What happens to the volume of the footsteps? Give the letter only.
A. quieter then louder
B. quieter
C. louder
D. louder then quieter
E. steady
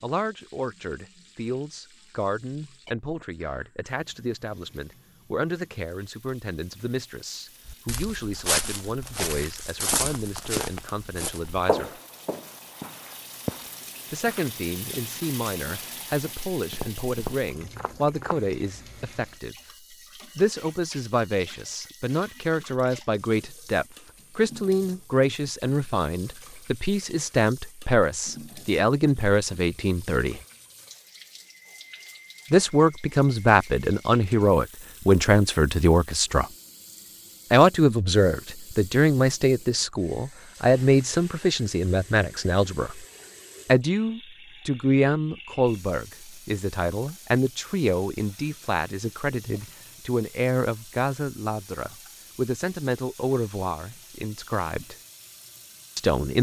A.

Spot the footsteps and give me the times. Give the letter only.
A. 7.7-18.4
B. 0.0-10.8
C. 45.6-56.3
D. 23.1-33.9
A.